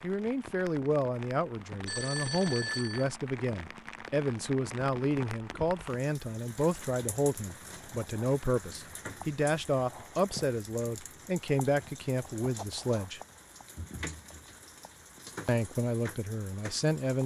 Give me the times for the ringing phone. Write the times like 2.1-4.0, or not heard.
1.8-3.1.